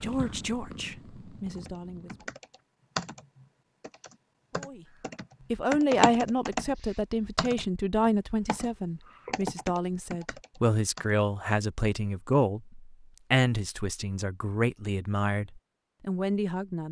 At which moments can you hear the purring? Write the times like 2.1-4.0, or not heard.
0.0-2.2.